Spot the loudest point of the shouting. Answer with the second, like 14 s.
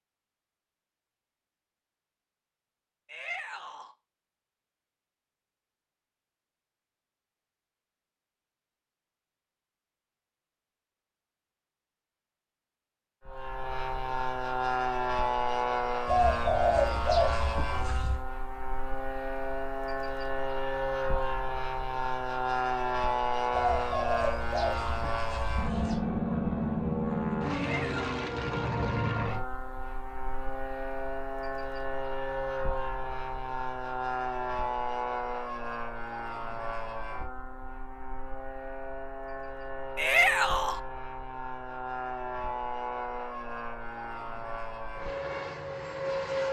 40 s.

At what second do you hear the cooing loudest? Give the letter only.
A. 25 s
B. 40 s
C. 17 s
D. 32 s
C.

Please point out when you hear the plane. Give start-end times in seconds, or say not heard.
13.2-46.4.